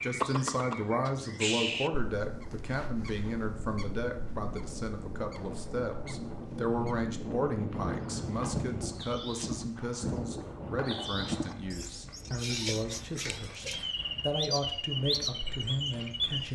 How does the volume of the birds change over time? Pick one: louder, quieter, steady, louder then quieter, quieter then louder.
quieter then louder.